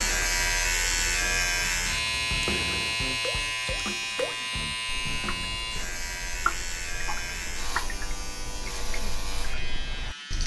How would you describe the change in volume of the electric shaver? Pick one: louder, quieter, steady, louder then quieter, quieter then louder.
quieter.